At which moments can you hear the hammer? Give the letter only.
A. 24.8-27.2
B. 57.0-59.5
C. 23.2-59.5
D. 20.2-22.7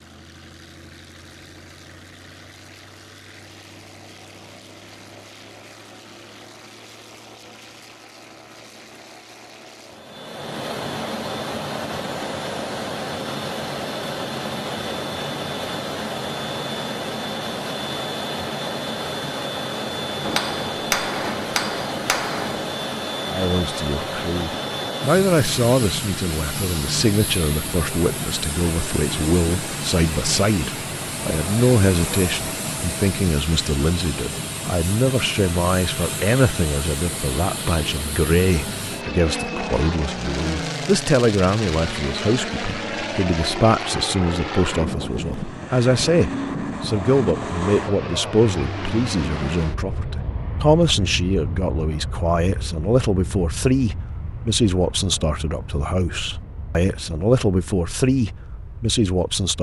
D.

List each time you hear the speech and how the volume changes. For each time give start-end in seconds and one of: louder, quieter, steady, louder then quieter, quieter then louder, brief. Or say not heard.
23.2-59.5 steady.